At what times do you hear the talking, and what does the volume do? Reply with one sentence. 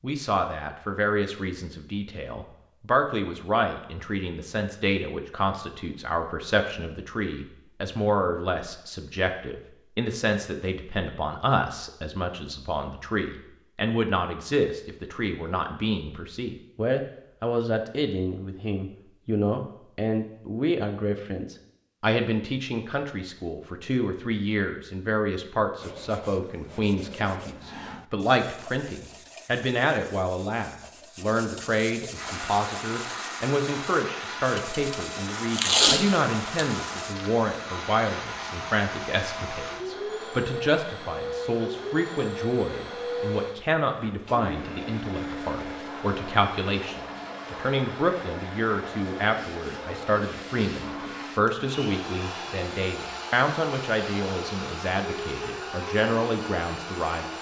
The talking can be heard from 0.0 to 57.3 s, at a steady volume.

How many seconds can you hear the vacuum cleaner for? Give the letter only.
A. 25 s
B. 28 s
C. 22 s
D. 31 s
A.